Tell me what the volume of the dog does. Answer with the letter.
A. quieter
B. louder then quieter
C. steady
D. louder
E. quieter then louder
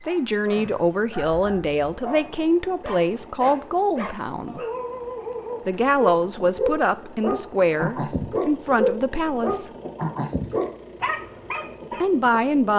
D.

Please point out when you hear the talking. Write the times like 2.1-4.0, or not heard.
0.1-4.6, 5.7-9.7, 12.0-12.7.